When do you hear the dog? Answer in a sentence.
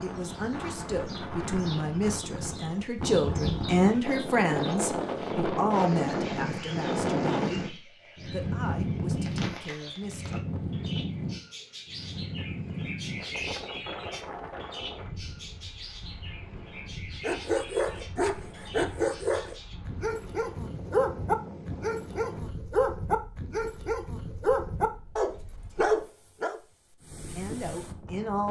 The dog can be heard from 17.2 to 26.6 s.